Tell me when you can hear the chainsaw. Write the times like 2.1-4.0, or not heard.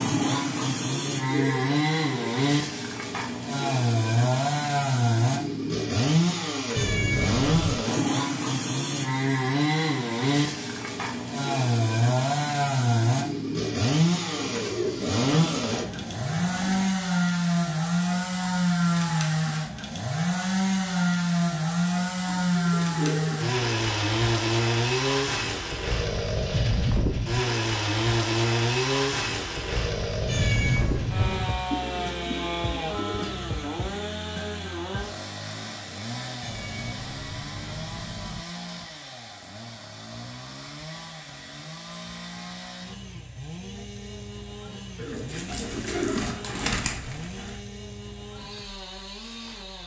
0.0-49.8.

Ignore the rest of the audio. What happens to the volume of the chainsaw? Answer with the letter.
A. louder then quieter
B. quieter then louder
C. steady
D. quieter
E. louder
D.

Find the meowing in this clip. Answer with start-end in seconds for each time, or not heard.
6.8-7.9, 30.2-31.6, 36.4-38.5.